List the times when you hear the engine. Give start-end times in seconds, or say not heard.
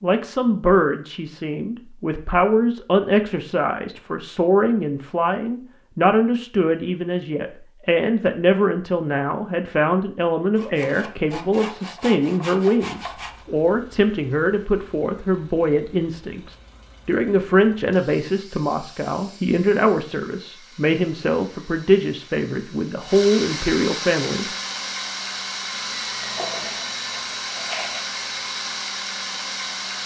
13.0-30.0.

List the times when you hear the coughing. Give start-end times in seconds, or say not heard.
not heard.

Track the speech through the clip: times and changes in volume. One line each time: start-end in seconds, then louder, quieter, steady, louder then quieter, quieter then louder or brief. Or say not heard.
0.0-24.4 steady.